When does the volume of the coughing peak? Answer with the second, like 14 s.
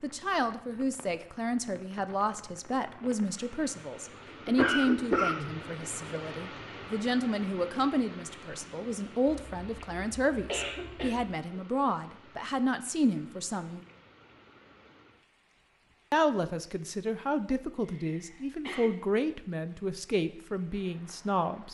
5 s.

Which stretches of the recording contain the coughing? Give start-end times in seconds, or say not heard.
4.5-5.5, 9.2-11.2, 17.9-18.9.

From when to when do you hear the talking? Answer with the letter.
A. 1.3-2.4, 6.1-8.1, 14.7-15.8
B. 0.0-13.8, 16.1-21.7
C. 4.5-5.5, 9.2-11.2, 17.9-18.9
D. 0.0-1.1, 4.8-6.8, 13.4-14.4
B.